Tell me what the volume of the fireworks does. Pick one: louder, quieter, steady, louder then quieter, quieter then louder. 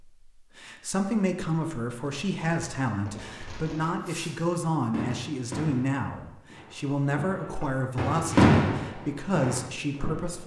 louder.